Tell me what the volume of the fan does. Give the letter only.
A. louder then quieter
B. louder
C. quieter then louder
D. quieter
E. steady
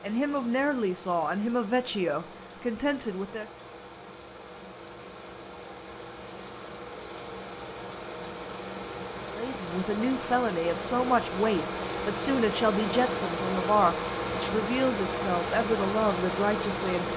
B.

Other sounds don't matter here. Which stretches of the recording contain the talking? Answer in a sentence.
You can hear the talking from 0.0 to 3.5 s and from 9.3 to 17.1 s.